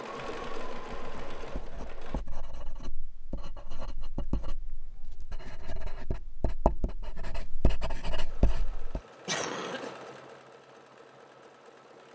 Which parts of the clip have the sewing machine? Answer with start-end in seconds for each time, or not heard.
0.0-2.2, 8.2-12.0.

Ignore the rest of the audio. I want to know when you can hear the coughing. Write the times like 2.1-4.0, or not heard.
9.2-9.9.